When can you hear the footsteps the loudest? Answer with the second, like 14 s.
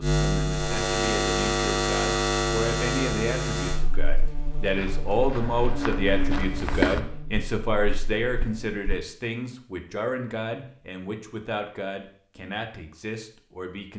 7 s.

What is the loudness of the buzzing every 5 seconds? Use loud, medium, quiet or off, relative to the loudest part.
loud, medium, off.